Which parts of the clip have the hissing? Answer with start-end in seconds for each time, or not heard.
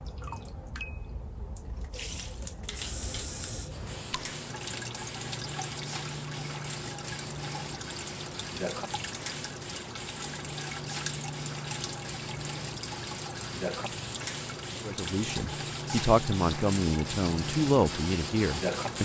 1.9-19.0.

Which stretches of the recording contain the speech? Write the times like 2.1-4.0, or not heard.
14.8-19.0.